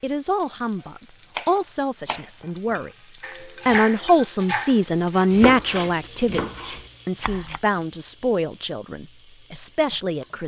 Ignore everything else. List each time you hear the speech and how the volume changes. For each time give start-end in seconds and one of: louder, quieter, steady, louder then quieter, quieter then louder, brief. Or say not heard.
0.0-10.4 louder then quieter.